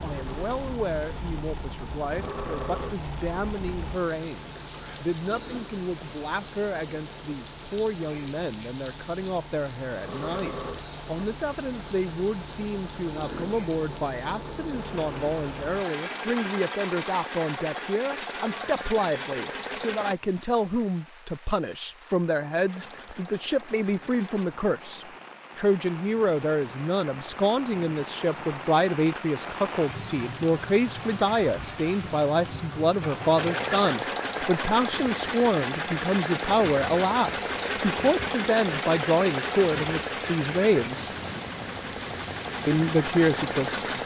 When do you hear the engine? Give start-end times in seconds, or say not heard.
0.0-20.1, 22.6-24.4, 33.4-44.0.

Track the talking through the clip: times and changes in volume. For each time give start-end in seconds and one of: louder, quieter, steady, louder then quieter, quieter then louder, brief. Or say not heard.
0.0-41.1 louder
42.6-43.9 brief.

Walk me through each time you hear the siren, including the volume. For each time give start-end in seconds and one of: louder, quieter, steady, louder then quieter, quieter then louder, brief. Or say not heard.
not heard.